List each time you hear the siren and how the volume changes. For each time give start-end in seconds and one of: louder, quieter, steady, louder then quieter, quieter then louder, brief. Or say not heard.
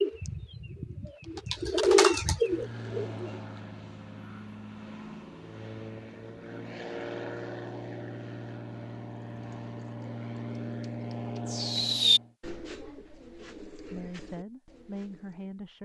not heard.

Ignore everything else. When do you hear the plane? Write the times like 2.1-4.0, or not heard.
2.5-12.3.